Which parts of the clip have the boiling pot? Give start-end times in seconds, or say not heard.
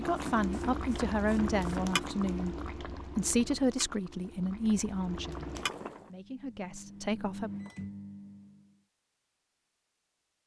0.0-6.1.